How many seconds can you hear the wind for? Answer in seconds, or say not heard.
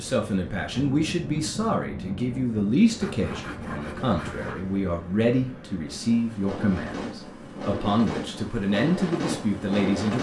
10 s.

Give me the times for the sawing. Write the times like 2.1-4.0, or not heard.
3.0-4.7.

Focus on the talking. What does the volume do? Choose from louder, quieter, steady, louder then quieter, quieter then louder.
steady.